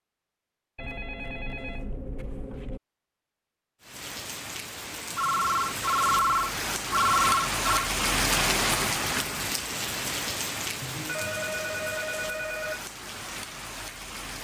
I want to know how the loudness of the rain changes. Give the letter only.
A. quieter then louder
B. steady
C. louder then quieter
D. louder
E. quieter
C.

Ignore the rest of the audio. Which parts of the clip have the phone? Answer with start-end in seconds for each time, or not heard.
0.8-2.8, 5.2-7.9, 10.8-12.8.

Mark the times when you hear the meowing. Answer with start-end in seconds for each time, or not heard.
not heard.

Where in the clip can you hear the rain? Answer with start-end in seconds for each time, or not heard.
3.8-14.3.